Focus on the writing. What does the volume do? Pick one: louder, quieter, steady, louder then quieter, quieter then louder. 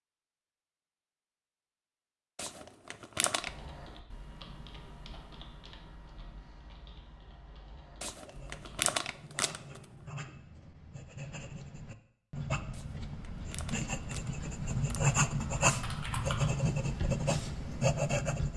louder.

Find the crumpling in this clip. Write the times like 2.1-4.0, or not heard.
2.4-3.5, 8.0-9.8, 12.7-15.2.